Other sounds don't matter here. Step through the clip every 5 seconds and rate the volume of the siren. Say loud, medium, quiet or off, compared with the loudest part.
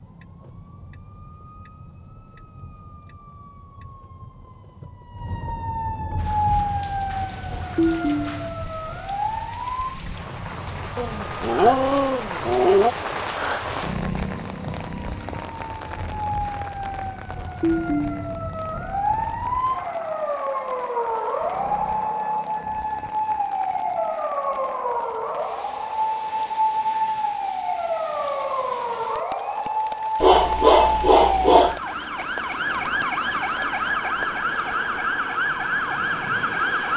quiet, loud, quiet, loud, loud, loud, loud, loud.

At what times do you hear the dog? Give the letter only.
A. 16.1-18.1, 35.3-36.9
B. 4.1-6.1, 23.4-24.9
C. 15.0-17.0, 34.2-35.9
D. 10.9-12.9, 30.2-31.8
D.